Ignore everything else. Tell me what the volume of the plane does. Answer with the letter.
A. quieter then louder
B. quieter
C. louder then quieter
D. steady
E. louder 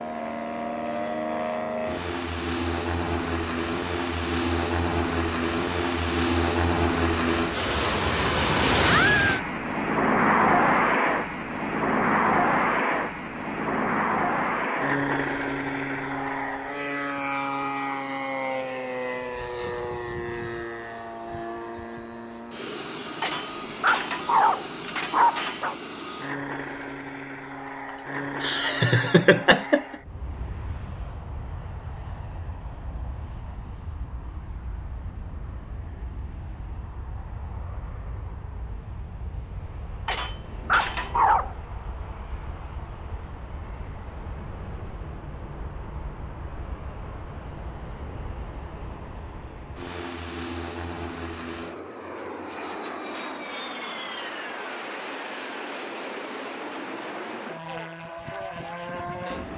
A.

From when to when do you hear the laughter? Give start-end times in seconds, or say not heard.
27.9-29.9.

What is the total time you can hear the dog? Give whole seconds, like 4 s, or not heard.
4 s.